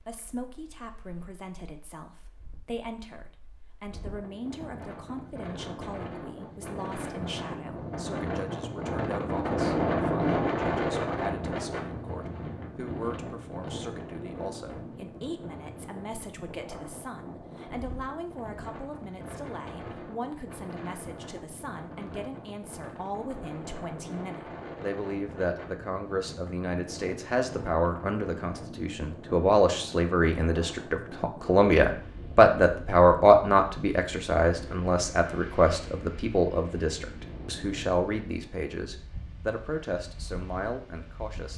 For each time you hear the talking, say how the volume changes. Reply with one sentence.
You can hear the talking from 0.0 to 41.5 s, getting louder.